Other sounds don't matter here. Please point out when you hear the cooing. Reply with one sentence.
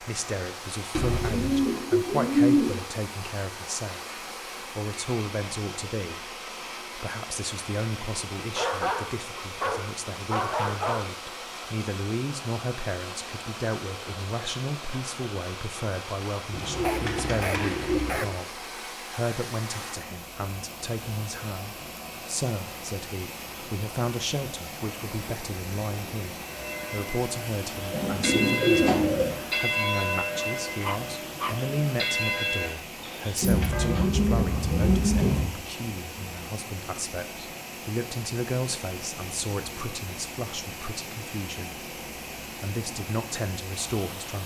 The cooing can be heard from 0.9 to 2.8 s, from 16.5 to 18.4 s, from 27.9 to 29.4 s and from 33.4 to 35.5 s.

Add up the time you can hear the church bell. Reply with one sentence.
You can hear the church bell for 8 seconds altogether.